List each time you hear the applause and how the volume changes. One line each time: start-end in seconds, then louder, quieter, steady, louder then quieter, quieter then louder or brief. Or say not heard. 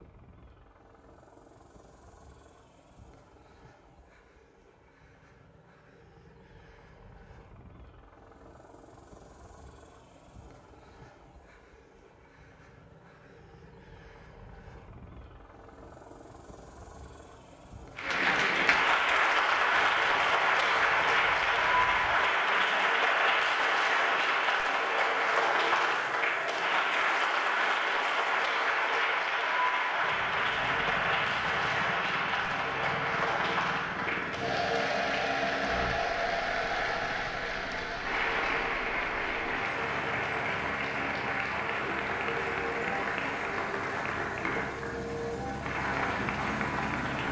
17.9-47.2 quieter.